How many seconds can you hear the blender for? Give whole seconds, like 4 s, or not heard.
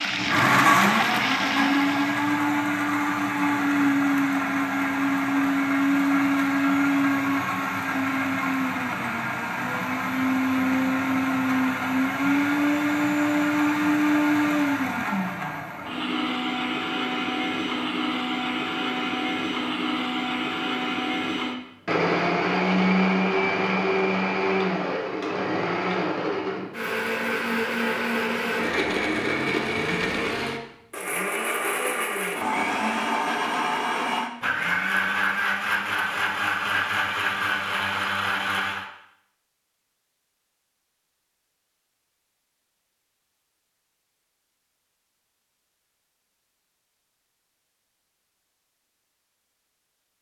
39 s.